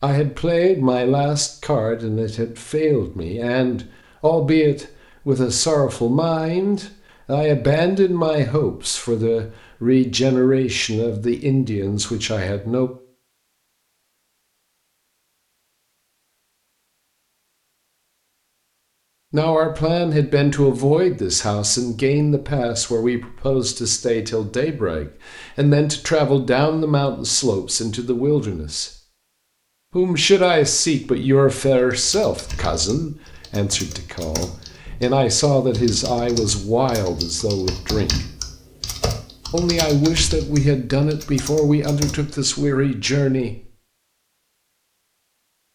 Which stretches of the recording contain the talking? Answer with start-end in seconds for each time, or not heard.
0.0-12.9, 19.3-28.9, 29.9-38.2, 39.5-43.7.